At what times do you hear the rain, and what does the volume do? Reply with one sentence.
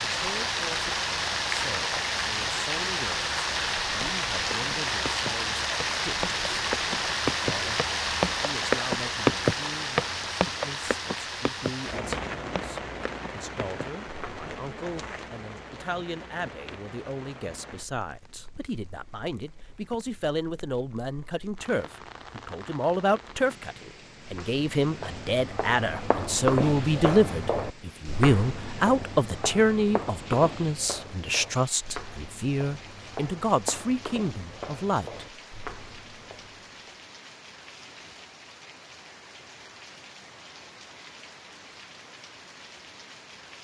You can hear the rain from 0.0 to 43.5 s, getting quieter.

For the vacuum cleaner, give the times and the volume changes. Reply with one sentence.
You can't hear the vacuum cleaner here.